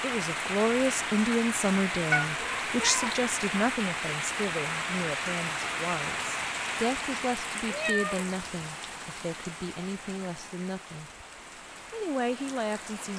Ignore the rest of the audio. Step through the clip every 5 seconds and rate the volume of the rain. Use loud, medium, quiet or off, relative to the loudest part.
loud, loud, quiet.